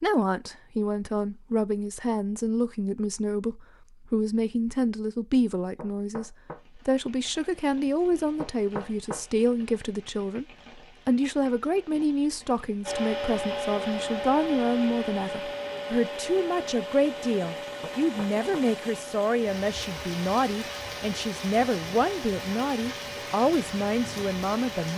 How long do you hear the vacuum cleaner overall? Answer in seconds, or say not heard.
12 s.